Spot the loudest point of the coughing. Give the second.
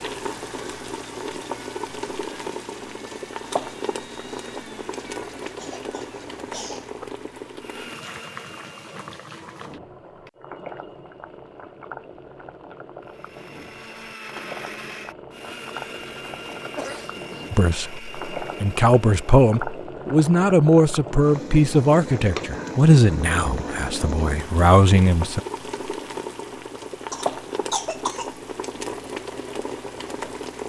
28 s.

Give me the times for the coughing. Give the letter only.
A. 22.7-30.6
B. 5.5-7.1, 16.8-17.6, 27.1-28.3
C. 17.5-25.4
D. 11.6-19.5
B.